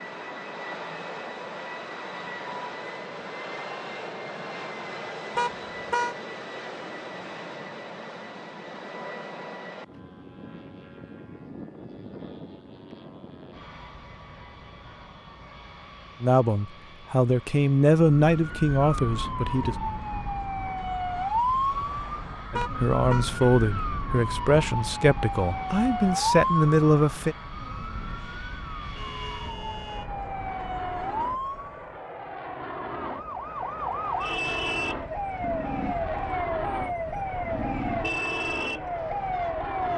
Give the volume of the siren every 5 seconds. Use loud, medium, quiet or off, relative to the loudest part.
off, off, off, loud, loud, loud, loud, loud.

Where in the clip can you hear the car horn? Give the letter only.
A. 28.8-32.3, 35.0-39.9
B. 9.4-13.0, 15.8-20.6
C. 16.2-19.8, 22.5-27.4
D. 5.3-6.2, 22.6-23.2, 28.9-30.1
D.